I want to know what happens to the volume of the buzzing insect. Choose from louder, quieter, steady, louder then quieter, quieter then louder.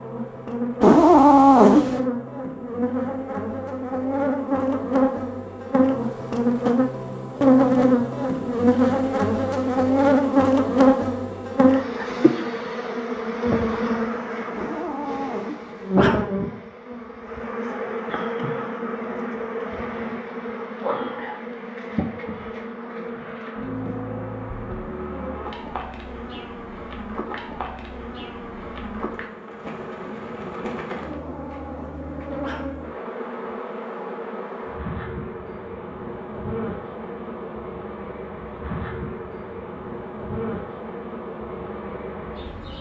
quieter.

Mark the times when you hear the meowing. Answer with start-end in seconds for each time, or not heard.
0.8-1.9, 14.6-16.2, 31.1-32.6.